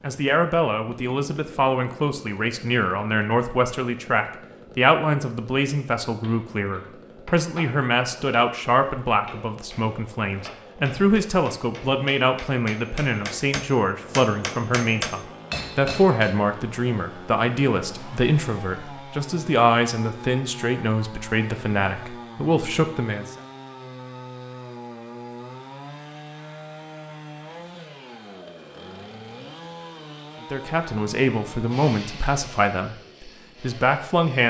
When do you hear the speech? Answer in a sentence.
You can hear the speech from 0.0 to 23.4 s and from 30.5 to 34.4 s.